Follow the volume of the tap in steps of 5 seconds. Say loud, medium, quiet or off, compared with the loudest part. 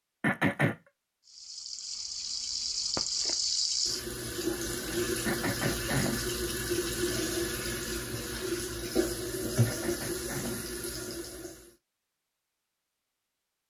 loud, loud, medium.